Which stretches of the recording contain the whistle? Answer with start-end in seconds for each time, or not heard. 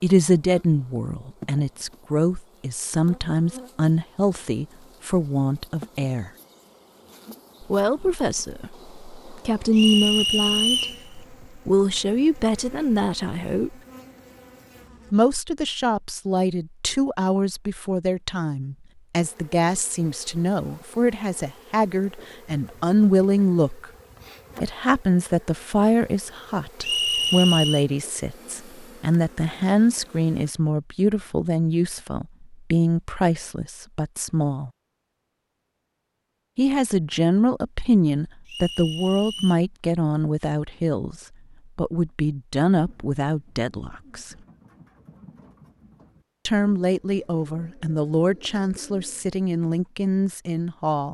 9.8-11.0, 26.8-27.9, 38.5-39.6.